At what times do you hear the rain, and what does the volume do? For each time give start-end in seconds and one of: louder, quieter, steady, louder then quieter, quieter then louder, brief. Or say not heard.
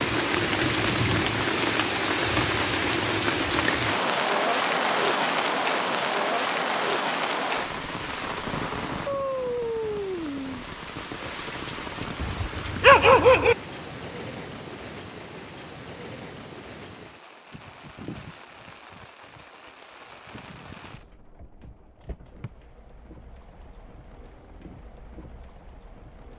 0.0-26.3 quieter.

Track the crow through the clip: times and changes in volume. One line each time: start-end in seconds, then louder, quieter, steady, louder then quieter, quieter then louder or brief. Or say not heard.
not heard.